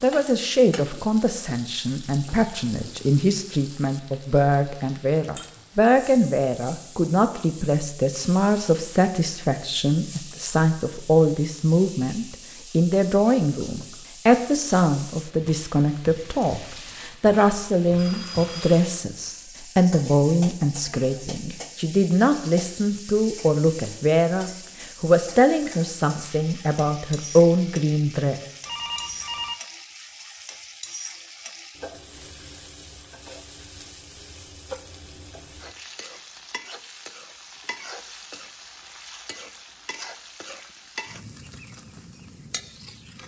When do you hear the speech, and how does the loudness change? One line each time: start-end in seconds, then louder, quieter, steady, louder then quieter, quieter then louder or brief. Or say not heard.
0.0-28.4 steady.